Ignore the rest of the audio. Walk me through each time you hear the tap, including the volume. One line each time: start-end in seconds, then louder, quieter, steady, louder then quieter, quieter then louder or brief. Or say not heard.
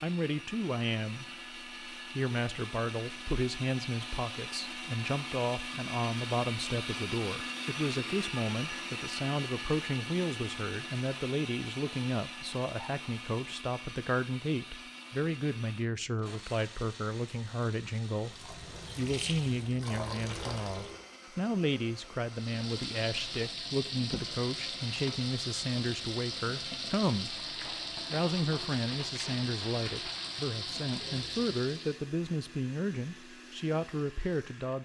18.2-21.1 brief
22.2-32.0 steady.